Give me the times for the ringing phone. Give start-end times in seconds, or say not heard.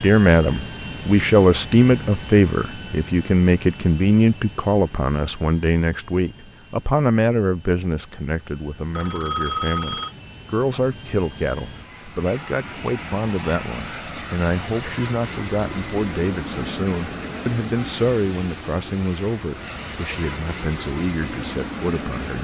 8.9-10.2.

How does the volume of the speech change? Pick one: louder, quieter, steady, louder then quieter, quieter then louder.
quieter.